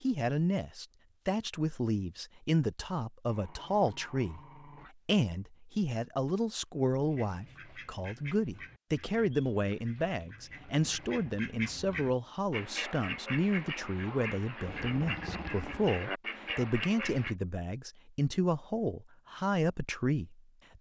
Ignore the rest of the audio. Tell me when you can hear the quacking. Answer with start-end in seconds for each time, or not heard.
7.0-17.4.